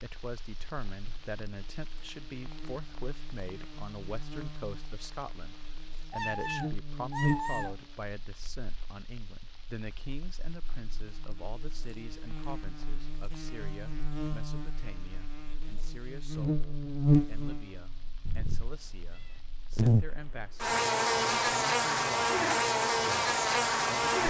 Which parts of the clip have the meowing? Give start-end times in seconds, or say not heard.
6.1-7.8, 18.2-19.4.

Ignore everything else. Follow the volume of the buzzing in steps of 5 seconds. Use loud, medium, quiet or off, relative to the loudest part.
quiet, medium, quiet, loud, loud.